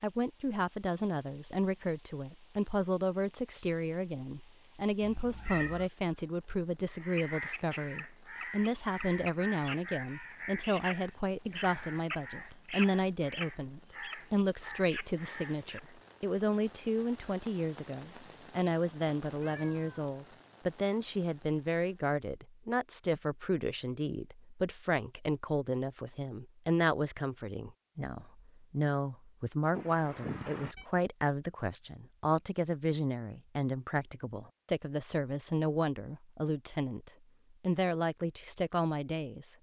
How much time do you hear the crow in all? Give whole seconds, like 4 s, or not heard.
9 s.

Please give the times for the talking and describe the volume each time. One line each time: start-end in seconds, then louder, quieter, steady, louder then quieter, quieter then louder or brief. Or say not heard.
0.0-39.5 steady.